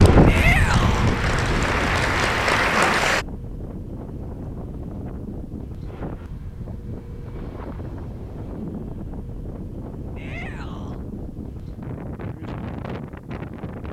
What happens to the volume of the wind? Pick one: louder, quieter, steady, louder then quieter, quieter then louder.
quieter.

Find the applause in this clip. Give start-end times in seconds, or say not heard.
0.0-3.2.